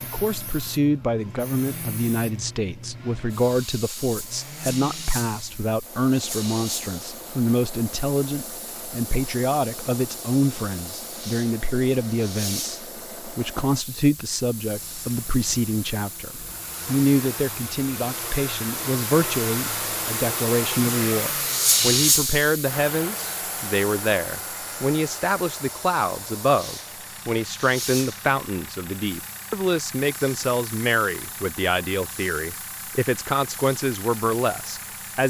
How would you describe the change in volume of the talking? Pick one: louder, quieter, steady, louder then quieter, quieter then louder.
steady.